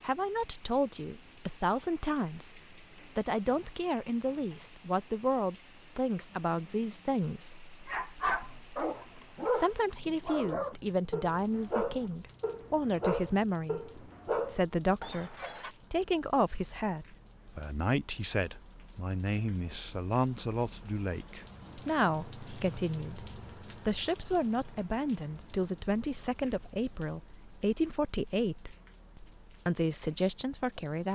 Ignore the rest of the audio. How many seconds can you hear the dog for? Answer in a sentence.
The dog can be heard for 8 seconds in total.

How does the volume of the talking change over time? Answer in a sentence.
The volume of the talking stays about the same.